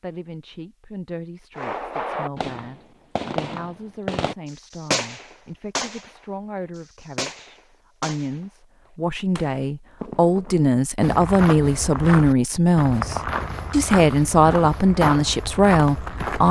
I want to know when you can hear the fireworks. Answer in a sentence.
The fireworks can be heard from 1.6 to 10.7 s.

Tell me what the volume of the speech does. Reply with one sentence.
The loudness of the speech goes up.